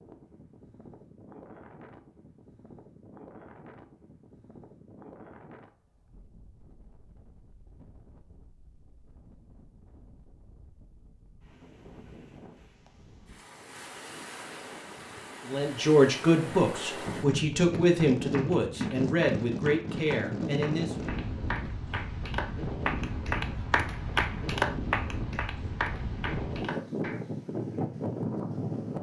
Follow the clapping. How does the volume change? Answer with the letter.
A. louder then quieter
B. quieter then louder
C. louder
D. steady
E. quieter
A.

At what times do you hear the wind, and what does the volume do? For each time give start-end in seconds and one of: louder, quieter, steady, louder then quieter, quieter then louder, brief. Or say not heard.
0.0-28.9 quieter then louder.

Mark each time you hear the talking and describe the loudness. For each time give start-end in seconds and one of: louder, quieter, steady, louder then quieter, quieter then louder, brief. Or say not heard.
15.4-21.1 quieter.